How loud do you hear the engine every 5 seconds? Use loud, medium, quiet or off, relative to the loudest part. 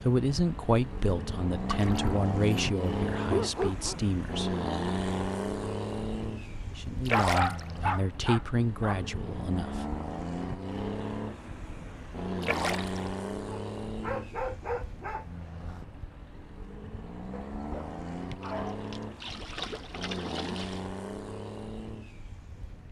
loud, loud, loud, medium, medium.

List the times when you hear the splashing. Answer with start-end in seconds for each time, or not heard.
1.6-2.2, 7.0-7.8, 12.4-13.1, 18.3-20.9.